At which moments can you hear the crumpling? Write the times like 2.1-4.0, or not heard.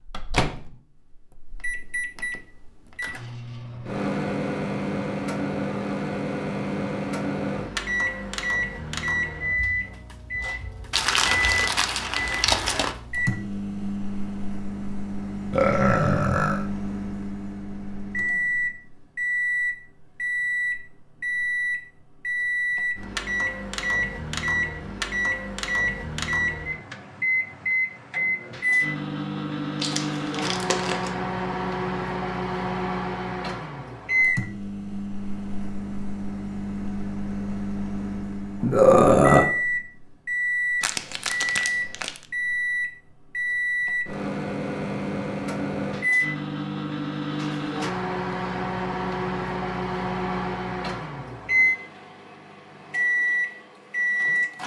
10.9-12.9, 29.8-31.1, 40.8-42.2.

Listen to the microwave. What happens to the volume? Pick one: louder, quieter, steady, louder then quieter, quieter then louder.
steady.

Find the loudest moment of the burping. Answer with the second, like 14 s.
39 s.